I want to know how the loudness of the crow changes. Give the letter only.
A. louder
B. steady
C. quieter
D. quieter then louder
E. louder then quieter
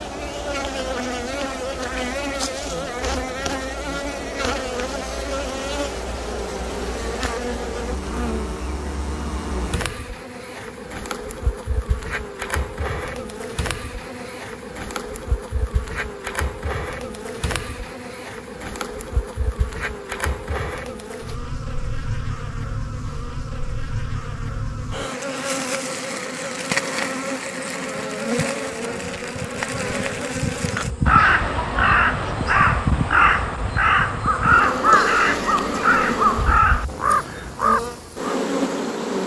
B.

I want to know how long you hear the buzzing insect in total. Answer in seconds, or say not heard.
39 s.